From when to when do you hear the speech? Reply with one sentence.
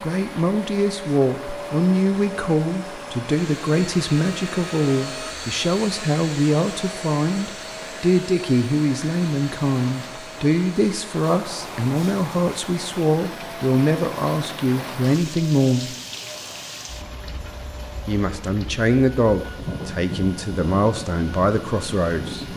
The speech can be heard from 0.0 to 15.9 s and from 18.1 to 22.5 s.